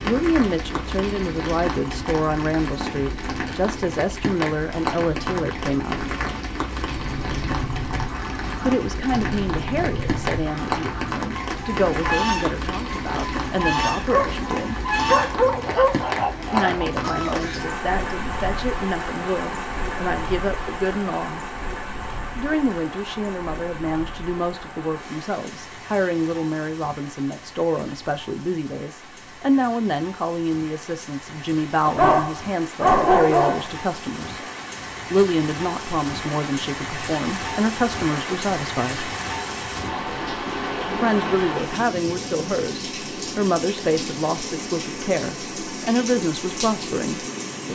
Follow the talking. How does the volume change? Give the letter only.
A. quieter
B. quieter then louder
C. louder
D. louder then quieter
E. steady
E.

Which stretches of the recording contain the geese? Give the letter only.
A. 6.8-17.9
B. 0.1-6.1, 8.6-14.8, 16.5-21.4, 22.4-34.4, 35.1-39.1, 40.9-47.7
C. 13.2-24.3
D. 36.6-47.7
A.